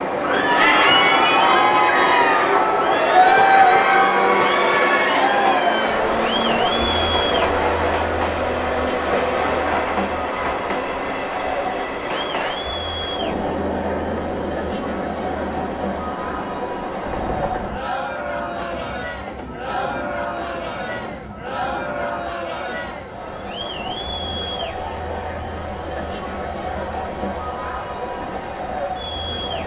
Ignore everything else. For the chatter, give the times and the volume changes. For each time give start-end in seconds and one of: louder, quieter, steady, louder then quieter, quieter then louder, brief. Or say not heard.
0.1-29.6 quieter.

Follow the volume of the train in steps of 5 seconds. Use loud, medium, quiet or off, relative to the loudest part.
loud, loud, medium, medium, quiet, quiet.